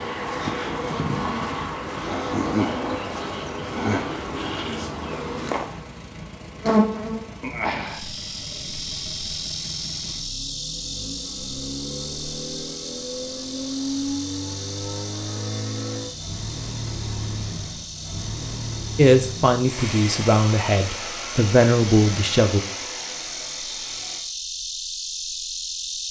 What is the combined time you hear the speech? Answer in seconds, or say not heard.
4 s.